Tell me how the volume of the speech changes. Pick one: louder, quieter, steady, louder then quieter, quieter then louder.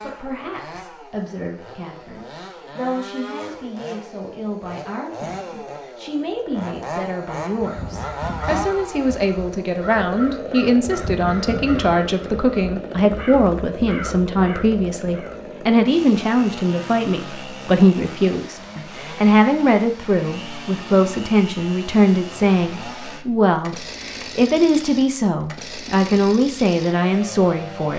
louder.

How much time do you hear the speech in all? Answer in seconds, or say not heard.
28 s.